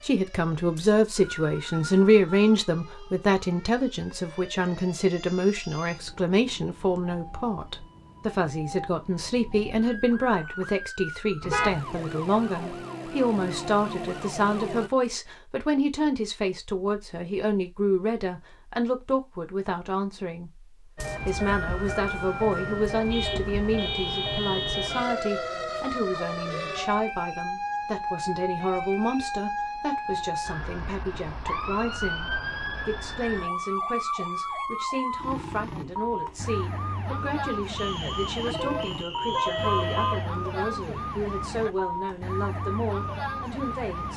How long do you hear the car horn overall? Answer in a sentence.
You can hear the car horn for 4 seconds altogether.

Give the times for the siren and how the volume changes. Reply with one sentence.
The siren can be heard from 0.0 to 14.9 s, getting louder; and from 20.9 to 44.1 s, at a steady volume.